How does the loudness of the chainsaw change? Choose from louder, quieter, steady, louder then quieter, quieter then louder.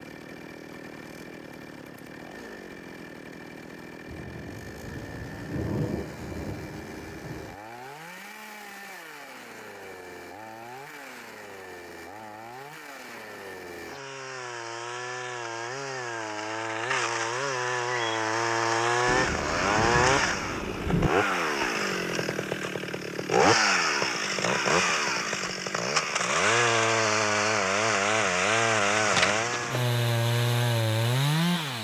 louder.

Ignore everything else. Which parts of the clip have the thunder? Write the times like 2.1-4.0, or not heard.
4.0-7.5, 19.1-21.1.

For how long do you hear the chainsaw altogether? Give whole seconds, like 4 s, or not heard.
32 s.